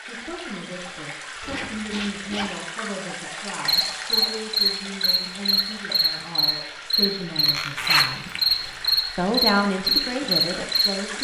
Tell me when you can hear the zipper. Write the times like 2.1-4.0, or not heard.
1.4-2.5, 7.5-8.9.